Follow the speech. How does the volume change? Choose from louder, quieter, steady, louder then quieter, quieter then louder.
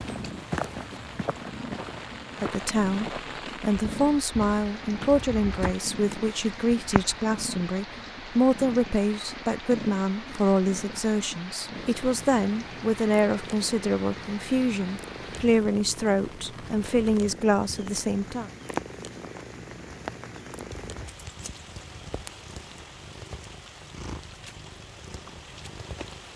steady.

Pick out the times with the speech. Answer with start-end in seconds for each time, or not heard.
2.4-18.5.